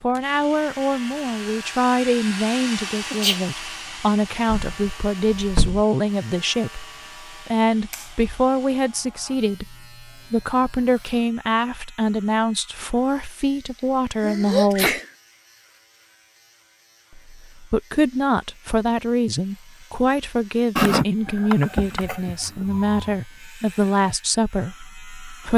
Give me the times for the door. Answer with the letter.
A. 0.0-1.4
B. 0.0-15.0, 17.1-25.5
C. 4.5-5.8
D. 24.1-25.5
C.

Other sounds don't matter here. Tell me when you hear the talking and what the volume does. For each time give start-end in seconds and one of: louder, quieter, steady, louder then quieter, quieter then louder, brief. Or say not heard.
0.0-15.0 steady
17.1-25.5 steady.